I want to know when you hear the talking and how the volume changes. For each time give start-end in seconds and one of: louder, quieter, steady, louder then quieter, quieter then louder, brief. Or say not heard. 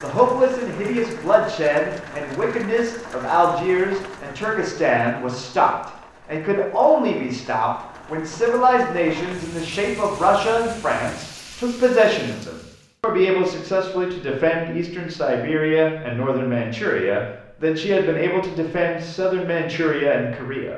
0.0-20.7 steady.